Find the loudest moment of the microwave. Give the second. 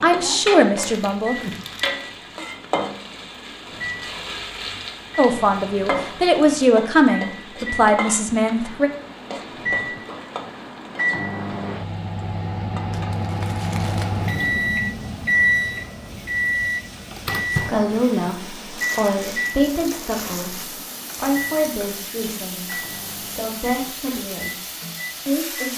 15 s.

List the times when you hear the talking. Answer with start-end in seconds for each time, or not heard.
0.0-1.4, 5.2-8.9, 17.5-22.7, 23.4-25.7.